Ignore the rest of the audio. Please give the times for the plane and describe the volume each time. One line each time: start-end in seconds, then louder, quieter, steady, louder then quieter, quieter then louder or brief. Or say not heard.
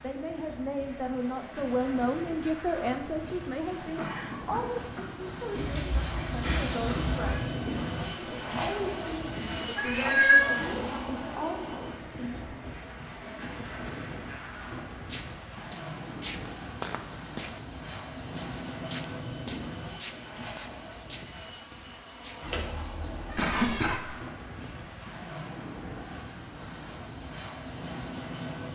0.0-28.6 louder then quieter.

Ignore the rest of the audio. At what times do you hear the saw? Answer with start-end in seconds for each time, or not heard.
not heard.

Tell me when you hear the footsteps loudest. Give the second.
17 s.